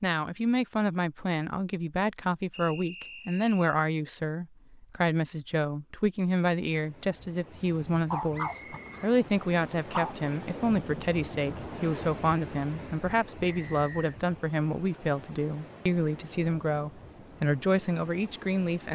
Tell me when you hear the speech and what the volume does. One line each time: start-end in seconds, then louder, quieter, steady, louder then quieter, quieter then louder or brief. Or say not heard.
0.0-18.9 steady.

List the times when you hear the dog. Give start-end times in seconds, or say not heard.
8.1-10.4.